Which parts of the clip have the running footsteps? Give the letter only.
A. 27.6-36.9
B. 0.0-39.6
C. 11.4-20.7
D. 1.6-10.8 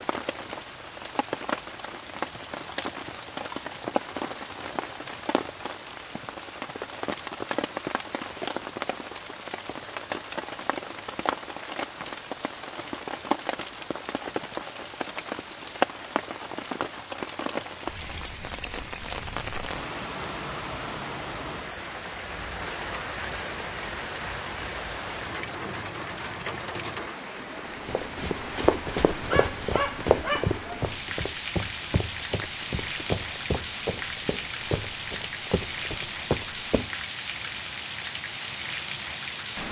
A.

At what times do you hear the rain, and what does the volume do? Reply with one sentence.
You can hear the rain from 0.0 to 39.6 s, at a steady volume.